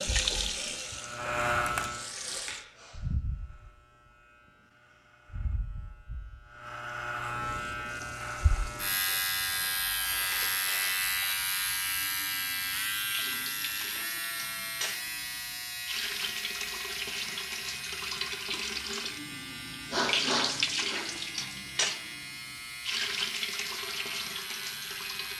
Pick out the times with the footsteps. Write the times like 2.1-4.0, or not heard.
not heard.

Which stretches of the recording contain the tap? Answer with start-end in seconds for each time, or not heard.
0.0-2.6, 7.4-25.3.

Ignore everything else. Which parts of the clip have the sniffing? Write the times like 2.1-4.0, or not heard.
2.2-3.0, 10.1-10.8, 19.9-21.1.